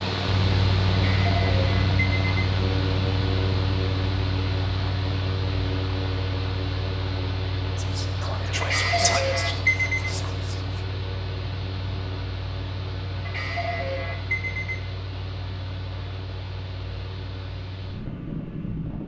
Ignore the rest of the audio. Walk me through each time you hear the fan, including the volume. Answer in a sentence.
The fan can be heard from 0.0 to 19.0 s, getting quieter.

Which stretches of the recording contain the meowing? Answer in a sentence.
You can't hear the meowing here.